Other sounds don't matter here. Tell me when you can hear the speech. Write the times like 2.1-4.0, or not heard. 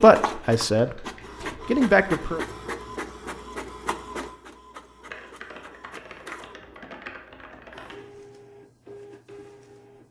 0.0-2.4.